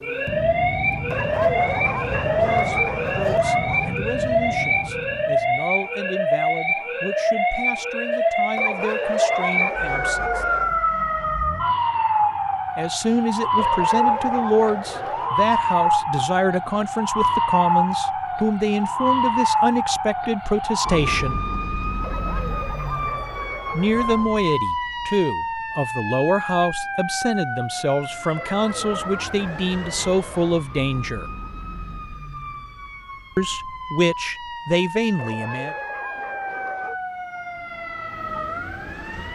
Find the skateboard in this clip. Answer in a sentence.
The skateboard can't be heard in this clip.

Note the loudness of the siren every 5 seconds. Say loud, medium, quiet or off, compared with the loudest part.
loud, loud, loud, loud, medium, medium, quiet, medium.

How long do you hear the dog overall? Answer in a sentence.
The dog can be heard for 13 seconds in total.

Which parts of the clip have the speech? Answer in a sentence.
You can hear the speech from 2.2 to 10.4 s, from 12.8 to 21.4 s, from 23.7 to 31.3 s and from 33.4 to 35.8 s.